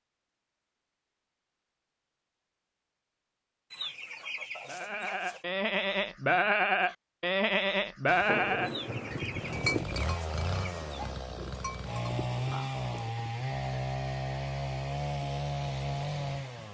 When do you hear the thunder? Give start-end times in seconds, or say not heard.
8.1-9.8.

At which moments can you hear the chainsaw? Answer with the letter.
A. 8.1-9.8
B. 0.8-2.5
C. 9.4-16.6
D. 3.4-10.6
C.